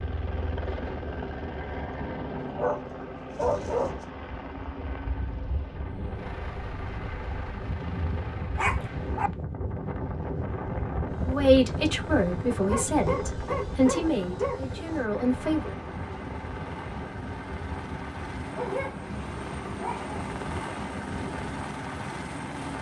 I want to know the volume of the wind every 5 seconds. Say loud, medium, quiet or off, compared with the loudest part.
medium, loud, loud, medium, medium.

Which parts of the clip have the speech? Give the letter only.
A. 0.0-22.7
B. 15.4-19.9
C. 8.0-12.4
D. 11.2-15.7
D.